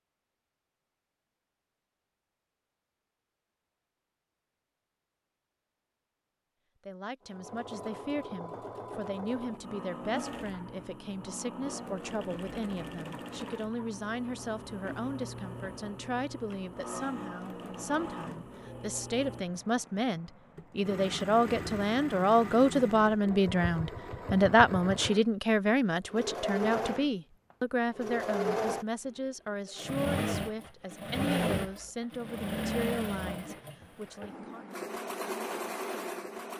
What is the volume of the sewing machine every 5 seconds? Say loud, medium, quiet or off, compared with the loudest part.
off, medium, medium, medium, medium, loud, loud, loud.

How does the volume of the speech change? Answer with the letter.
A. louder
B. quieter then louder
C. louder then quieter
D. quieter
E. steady
C.